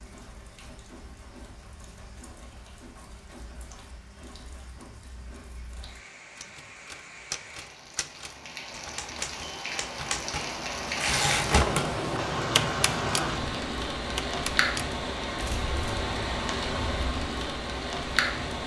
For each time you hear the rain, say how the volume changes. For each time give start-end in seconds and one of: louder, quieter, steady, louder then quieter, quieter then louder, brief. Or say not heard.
0.0-18.6 louder.